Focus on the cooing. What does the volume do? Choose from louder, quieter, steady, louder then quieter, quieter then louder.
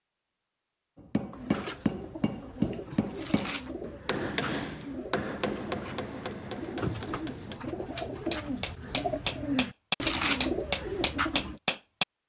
louder.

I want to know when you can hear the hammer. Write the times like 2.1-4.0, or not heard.
0.9-12.1.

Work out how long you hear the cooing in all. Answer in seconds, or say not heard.
10 s.